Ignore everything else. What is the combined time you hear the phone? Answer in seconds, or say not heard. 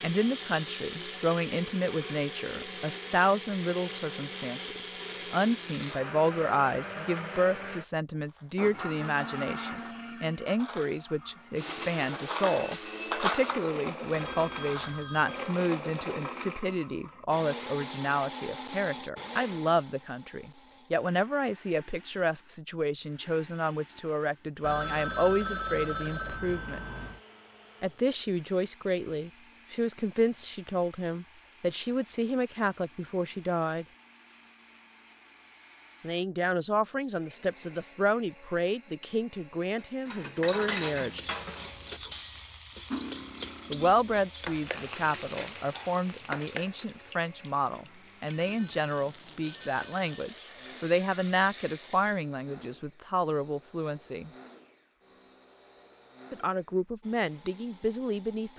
6 s.